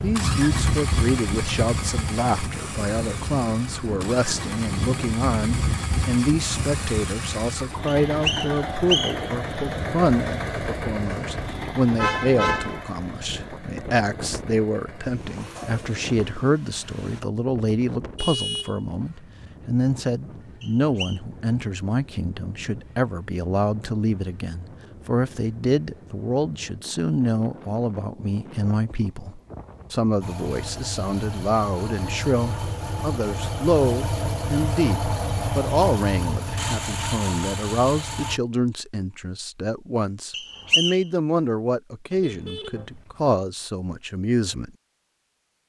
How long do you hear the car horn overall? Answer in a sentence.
You can hear the car horn for 3 seconds altogether.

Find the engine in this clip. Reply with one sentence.
The engine can be heard from 0.0 to 17.2 s and from 30.2 to 38.4 s.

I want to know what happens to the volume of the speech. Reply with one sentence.
The loudness of the speech stays about the same.